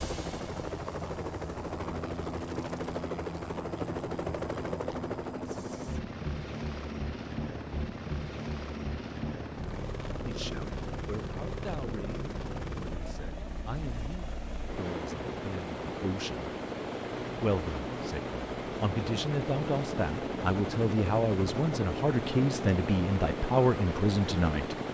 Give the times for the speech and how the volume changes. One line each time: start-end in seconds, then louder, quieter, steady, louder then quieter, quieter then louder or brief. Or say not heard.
10.2-16.6 steady
17.4-24.8 louder.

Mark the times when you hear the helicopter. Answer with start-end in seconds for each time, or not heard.
0.0-24.8.